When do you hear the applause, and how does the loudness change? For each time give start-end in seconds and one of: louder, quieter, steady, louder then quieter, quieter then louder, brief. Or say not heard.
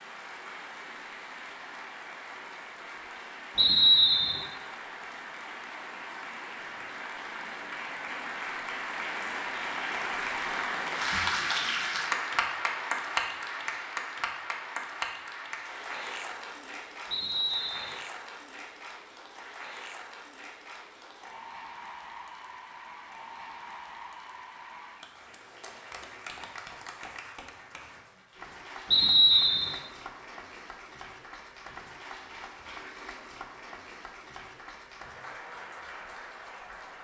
0.0-36.9 louder then quieter.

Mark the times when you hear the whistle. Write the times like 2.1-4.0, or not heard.
3.5-4.5, 17.1-17.9, 28.9-29.8.